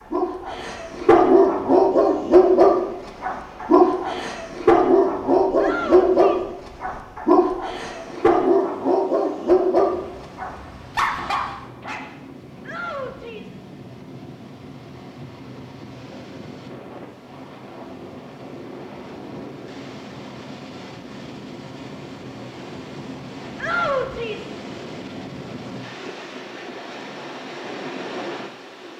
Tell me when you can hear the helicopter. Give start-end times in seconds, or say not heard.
not heard.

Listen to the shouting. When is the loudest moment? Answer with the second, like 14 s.
24 s.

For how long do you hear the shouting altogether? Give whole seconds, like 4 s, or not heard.
3 s.